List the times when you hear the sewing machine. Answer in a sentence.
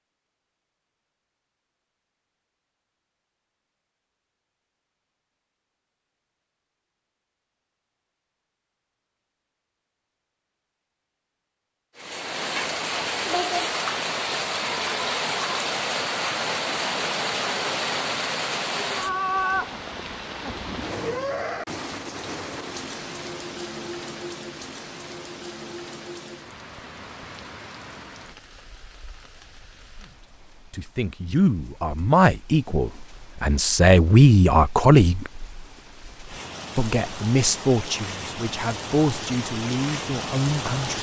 The sewing machine can't be heard in this clip.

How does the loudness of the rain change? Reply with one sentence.
The loudness of the rain goes down, then up.